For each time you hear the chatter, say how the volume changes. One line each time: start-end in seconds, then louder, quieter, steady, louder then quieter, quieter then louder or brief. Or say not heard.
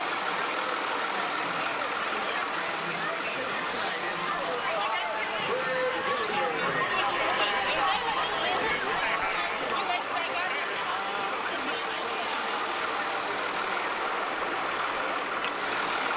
0.0-16.1 louder then quieter.